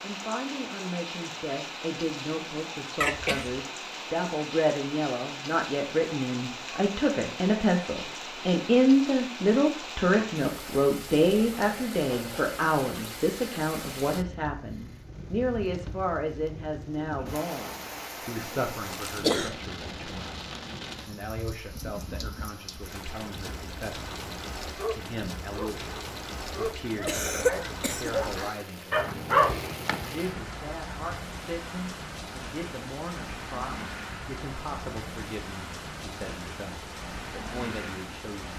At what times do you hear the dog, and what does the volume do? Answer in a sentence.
The dog can be heard from 24.6 to 30.7 s, getting louder.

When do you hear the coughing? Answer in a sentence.
You can hear the coughing from 3.0 to 3.6 s, from 18.4 to 19.5 s and from 27.1 to 28.1 s.